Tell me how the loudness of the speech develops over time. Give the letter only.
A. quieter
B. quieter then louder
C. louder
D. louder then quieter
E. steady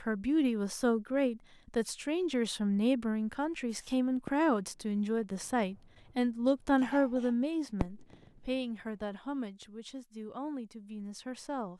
A.